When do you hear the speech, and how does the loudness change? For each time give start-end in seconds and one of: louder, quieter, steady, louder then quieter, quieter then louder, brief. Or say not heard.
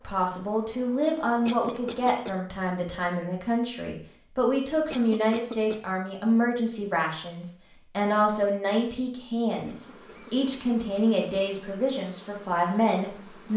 0.0-13.5 steady.